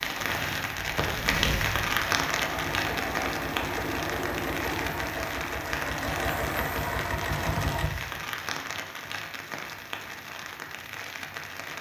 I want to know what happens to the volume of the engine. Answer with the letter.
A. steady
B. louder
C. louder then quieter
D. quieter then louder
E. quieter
B.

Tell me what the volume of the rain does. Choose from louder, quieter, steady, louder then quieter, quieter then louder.
quieter.